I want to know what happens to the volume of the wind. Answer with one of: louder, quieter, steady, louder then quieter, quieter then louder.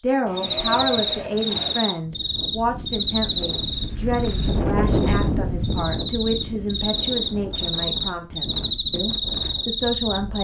louder then quieter.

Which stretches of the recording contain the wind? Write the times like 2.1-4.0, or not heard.
1.9-10.3.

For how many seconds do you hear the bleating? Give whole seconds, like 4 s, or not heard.
2 s.